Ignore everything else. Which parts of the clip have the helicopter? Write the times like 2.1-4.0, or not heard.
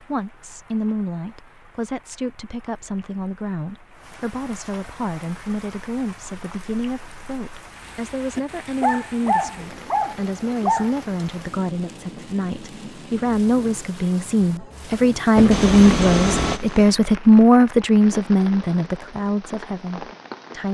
15.3-17.0.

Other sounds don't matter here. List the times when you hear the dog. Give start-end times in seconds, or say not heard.
8.3-10.9.